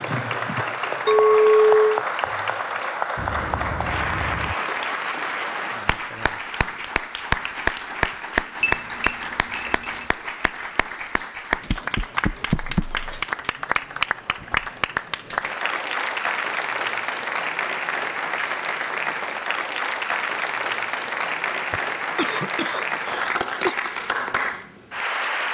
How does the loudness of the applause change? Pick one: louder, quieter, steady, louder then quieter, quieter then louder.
steady.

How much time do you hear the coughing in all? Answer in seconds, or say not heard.
4 s.